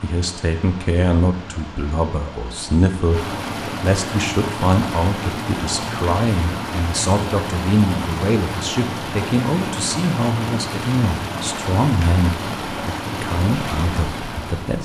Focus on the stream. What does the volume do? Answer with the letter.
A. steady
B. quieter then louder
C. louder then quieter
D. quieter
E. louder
E.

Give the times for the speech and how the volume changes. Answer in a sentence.
The speech can be heard from 0.0 to 14.7 s, at a steady volume.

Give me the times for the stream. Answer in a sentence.
You can hear the stream from 0.0 to 14.7 s.